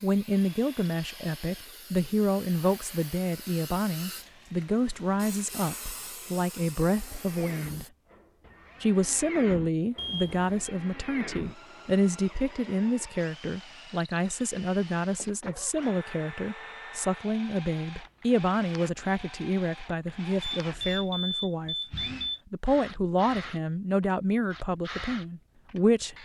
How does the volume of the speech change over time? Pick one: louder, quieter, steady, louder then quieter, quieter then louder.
steady.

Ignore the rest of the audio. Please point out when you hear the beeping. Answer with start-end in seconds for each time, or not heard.
9.9-10.7, 20.4-22.4.